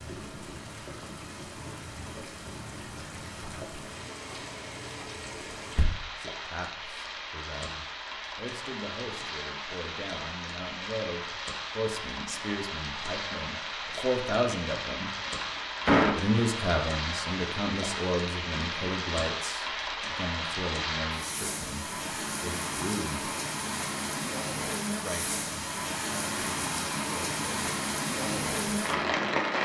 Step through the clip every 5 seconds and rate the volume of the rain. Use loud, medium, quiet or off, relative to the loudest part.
medium, medium, medium, loud, loud, loud.